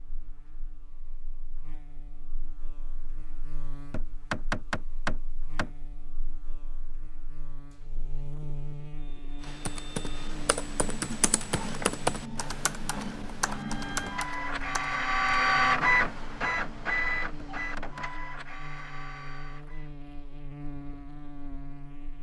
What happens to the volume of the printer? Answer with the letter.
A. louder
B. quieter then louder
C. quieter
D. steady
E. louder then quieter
E.